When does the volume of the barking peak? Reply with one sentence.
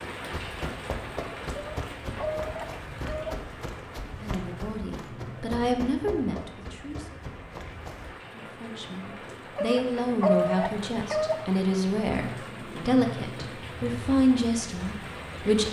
The volume of the barking peaks at 10 seconds.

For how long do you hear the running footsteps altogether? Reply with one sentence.
The running footsteps can be heard for 8 seconds in total.